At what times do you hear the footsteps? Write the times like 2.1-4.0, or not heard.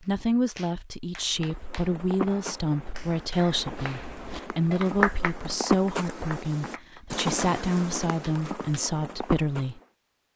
1.3-9.8.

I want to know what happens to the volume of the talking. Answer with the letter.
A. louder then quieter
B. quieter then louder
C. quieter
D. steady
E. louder
D.